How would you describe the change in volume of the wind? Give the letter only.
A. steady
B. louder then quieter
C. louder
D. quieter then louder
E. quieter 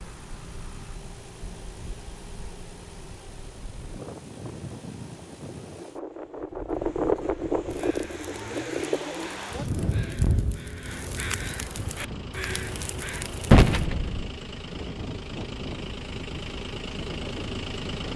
B.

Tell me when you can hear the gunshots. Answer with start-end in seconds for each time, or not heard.
13.5-14.3.